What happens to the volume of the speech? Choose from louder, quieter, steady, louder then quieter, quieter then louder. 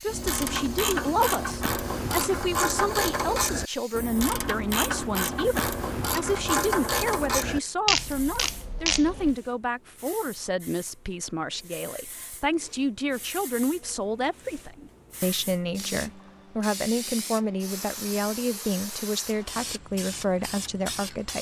steady.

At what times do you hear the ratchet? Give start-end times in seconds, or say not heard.
0.1-9.3.